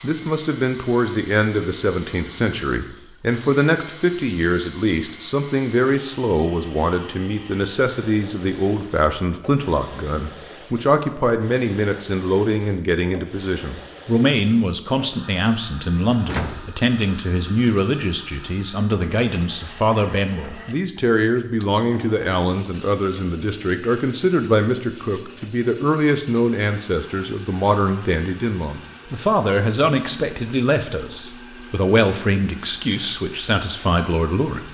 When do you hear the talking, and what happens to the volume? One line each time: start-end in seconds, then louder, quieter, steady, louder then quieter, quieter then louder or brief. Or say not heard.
0.0-34.6 steady.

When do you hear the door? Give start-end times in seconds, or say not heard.
16.2-17.4.